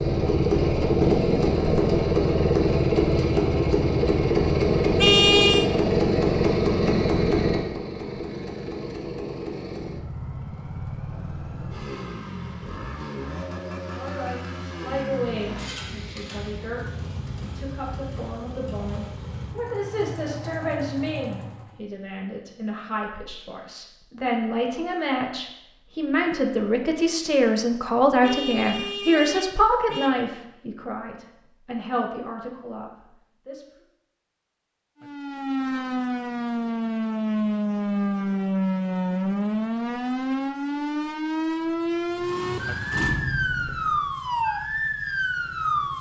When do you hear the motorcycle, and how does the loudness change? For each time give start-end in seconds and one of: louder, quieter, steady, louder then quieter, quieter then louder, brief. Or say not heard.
0.0-21.8 quieter
41.5-45.9 louder then quieter.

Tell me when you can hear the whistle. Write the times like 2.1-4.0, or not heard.
not heard.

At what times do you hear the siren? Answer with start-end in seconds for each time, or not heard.
35.0-45.9.